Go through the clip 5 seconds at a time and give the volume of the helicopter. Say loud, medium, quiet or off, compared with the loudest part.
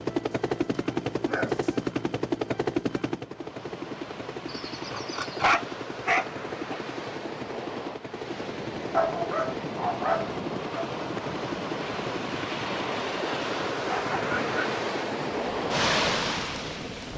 loud, medium, medium, medium.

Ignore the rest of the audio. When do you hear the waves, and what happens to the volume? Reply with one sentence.
The waves can be heard from 3.1 to 17.1 s, getting louder.